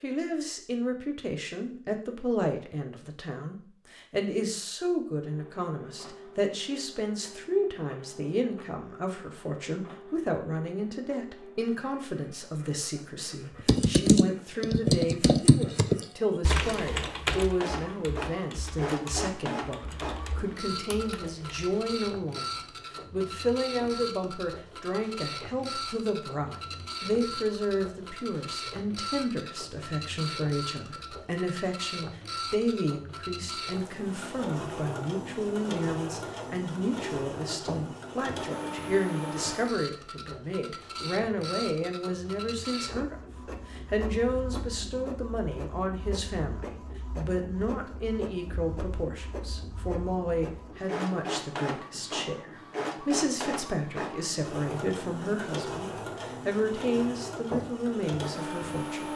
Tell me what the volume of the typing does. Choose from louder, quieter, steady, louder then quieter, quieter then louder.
quieter.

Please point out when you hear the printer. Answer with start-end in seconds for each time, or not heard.
5.2-59.1.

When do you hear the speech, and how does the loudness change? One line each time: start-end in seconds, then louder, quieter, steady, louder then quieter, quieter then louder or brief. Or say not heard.
0.0-59.1 steady.